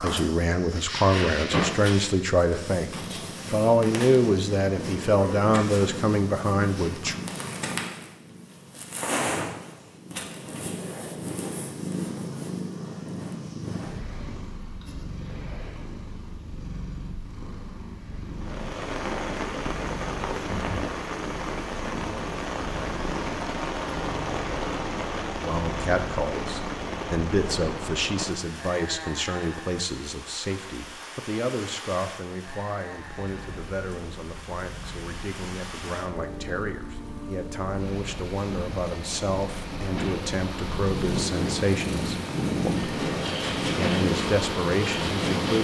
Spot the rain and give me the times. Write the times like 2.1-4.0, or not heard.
18.4-45.5.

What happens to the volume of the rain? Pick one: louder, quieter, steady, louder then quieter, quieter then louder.
quieter then louder.